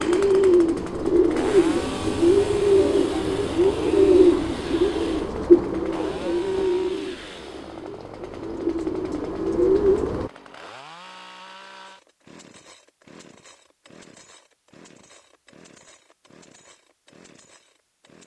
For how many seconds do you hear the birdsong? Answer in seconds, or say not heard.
10 s.